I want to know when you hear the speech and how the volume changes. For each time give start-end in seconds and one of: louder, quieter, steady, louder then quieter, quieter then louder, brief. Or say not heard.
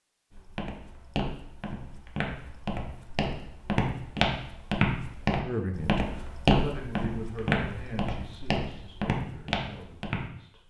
5.5-10.6 quieter.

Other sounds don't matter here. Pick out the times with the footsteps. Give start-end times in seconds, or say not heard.
0.3-10.2.